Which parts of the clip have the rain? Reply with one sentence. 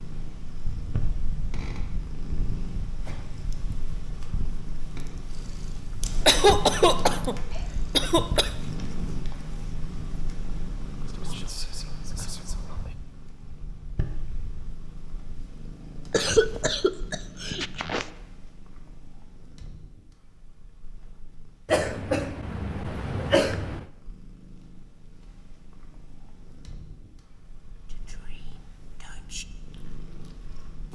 You can't hear the rain here.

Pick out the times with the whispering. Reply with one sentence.
The whispering can be heard from 11.1 to 12.9 s and from 27.9 to 29.4 s.